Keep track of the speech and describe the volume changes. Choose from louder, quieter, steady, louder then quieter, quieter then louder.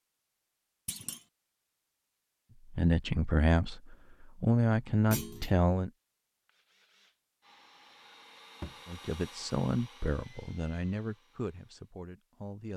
quieter.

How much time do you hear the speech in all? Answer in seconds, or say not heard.
7 s.